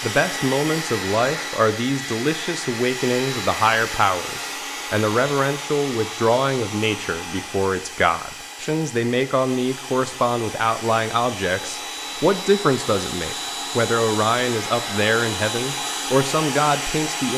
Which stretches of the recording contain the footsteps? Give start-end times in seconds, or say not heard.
not heard.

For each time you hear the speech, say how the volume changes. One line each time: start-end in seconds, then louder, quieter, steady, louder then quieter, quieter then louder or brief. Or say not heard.
0.0-17.3 steady.